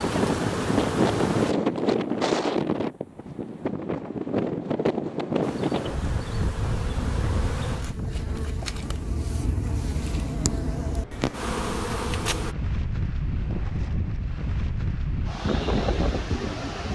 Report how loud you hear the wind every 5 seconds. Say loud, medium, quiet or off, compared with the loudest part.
loud, medium, medium, loud.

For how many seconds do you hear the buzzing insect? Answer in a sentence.
The buzzing insect can be heard for 9 seconds in total.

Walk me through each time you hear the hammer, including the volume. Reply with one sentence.
You can't hear the hammer here.